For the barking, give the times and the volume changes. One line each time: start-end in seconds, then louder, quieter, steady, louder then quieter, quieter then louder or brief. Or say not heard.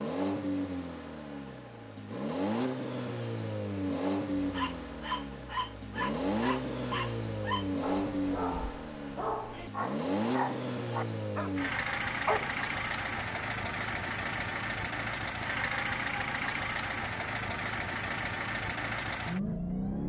4.3-12.6 steady.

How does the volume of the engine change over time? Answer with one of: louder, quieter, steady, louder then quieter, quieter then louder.
steady.